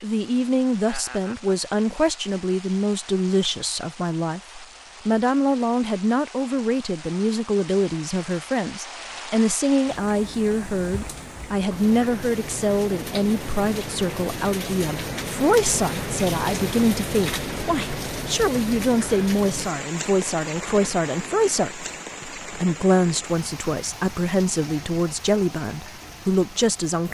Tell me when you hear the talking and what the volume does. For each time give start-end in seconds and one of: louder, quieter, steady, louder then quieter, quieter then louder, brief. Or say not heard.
0.0-27.0 steady.